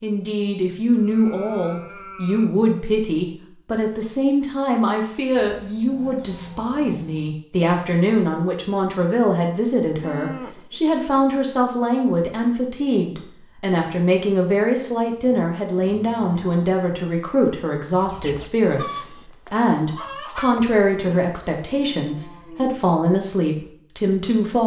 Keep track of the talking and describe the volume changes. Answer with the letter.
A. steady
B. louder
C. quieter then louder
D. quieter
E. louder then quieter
A.